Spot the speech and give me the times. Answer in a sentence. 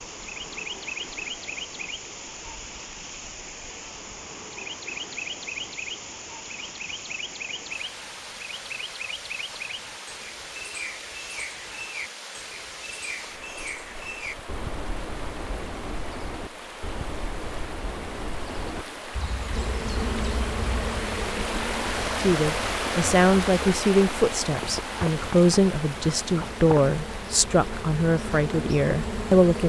You can hear the speech from 22.2 to 29.6 s.